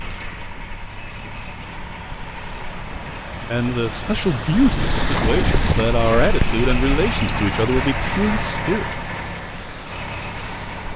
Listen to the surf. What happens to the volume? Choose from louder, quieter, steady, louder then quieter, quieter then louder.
louder then quieter.